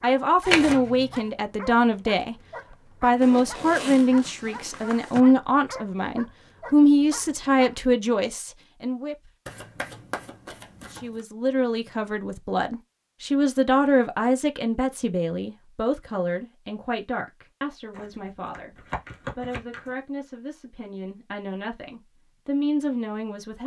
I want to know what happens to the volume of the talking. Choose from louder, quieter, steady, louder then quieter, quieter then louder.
quieter.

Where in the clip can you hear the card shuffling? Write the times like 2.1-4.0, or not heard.
0.5-1.2, 9.4-11.2, 17.9-19.9.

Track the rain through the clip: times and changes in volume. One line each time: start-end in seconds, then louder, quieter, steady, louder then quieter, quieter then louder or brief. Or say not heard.
not heard.